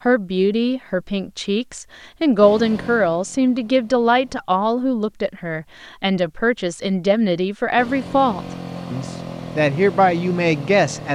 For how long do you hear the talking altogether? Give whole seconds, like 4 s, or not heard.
11 s.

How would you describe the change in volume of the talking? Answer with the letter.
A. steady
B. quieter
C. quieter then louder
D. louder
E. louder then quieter
A.